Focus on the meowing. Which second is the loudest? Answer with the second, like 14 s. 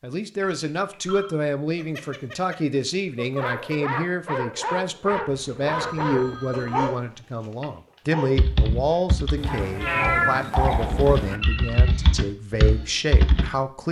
10 s.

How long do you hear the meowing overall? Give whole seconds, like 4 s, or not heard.
4 s.